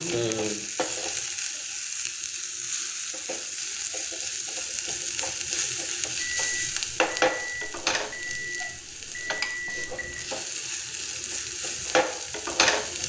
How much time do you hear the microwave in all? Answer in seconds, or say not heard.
4 s.